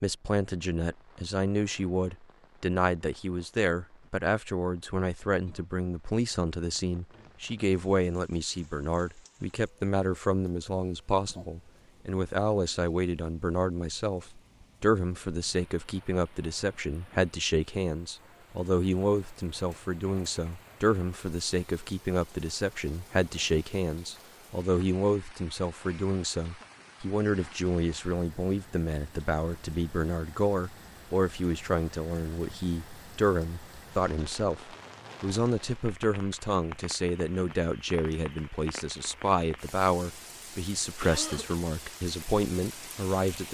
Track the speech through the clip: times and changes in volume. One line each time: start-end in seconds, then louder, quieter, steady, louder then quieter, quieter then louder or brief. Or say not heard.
0.0-43.4 steady.